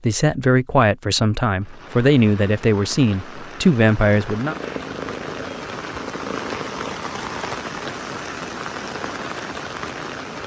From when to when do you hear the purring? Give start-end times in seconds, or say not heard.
4.5-7.0.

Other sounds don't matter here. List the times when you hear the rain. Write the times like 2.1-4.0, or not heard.
1.6-10.4.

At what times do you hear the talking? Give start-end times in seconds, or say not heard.
0.0-4.5.